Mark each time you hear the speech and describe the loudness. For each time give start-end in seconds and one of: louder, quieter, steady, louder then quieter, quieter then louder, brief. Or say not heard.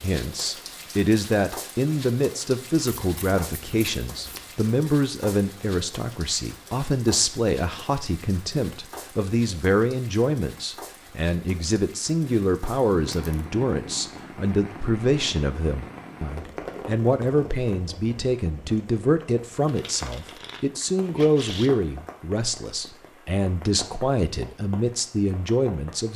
0.0-26.1 steady.